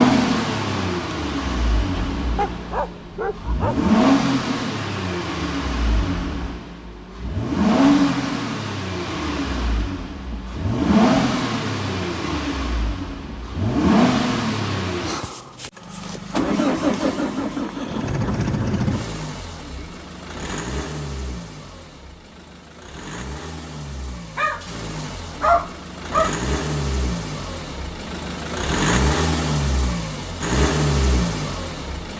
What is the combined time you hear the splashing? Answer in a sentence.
You can't hear the splashing here.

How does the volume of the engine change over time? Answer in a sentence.
The loudness of the engine goes down, then up.